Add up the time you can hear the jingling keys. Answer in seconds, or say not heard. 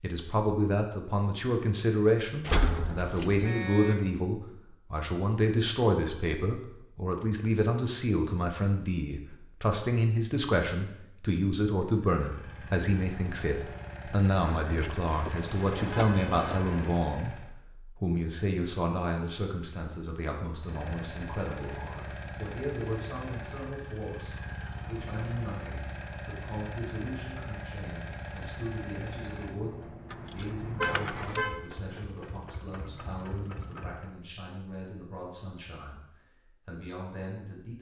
4 s.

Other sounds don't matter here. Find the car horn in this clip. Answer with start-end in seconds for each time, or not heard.
3.4-4.0, 15.1-17.1, 30.8-31.6.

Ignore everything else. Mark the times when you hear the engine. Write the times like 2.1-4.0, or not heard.
12.2-17.5, 20.6-34.1.